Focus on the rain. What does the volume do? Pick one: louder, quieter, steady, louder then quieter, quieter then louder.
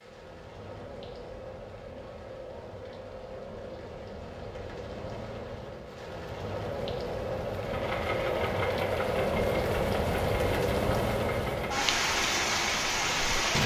louder.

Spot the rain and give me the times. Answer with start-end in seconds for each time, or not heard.
0.0-13.6.